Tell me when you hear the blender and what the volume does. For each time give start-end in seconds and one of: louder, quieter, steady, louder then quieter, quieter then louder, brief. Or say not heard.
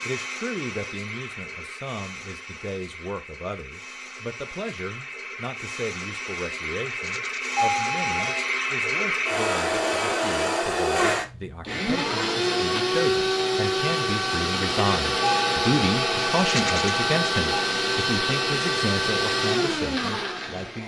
0.0-20.8 louder.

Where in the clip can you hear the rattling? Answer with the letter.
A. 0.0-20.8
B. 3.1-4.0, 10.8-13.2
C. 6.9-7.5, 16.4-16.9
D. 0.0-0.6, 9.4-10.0
C.